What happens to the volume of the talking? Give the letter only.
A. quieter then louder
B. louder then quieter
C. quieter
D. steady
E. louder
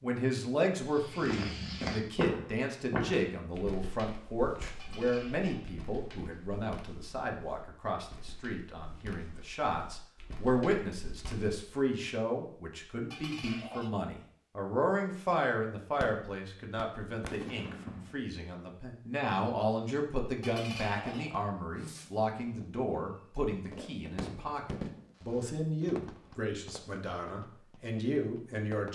D.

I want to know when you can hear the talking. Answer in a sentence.
The talking can be heard from 0.0 to 28.9 s.